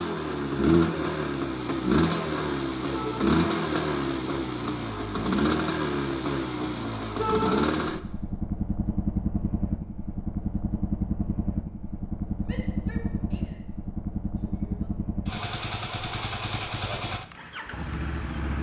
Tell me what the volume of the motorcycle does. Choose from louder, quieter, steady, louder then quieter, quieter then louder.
quieter.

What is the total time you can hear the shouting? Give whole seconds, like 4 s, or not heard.
3 s.